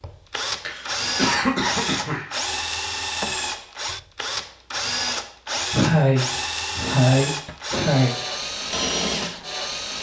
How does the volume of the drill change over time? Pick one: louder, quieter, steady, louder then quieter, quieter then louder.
steady.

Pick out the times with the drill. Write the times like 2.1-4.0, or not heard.
0.0-9.9.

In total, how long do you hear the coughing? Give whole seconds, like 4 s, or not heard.
4 s.